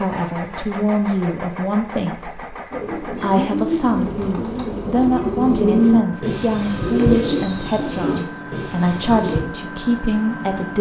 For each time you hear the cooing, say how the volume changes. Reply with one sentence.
The cooing can be heard from 2.7 to 9.4 s, getting louder then quieter.